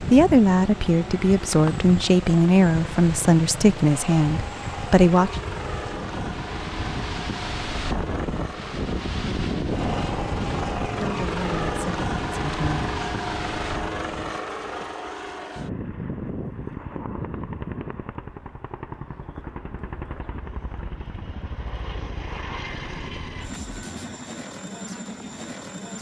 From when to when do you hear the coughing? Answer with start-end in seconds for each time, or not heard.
not heard.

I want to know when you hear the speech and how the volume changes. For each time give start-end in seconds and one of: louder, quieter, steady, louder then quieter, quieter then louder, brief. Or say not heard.
0.0-5.4 steady
10.9-12.9 brief.